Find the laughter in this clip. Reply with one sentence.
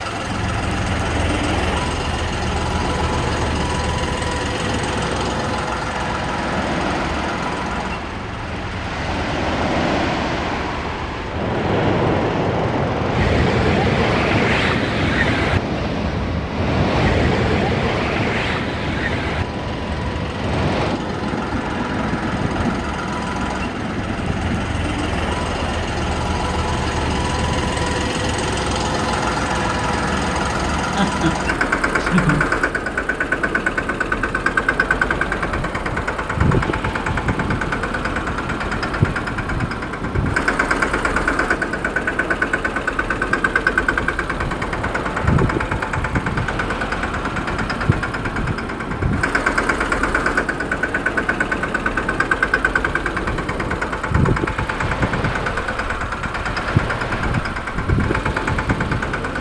You can hear the laughter from 30.9 to 32.5 s.